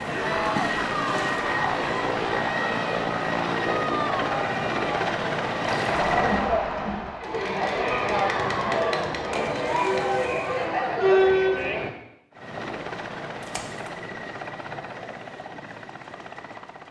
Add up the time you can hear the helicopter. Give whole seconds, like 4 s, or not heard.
11 s.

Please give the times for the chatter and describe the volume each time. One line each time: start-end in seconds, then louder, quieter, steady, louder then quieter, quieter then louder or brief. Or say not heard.
0.1-11.9 louder.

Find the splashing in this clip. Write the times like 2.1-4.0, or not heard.
0.5-1.4, 5.6-6.0, 9.3-10.7, 13.4-13.9.